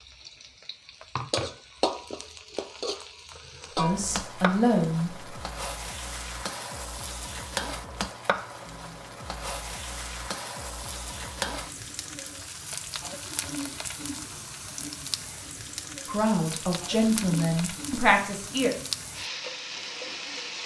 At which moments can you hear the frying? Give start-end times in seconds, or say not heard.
0.0-20.6.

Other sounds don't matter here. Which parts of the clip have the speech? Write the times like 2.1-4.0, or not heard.
3.8-5.2, 16.1-18.7.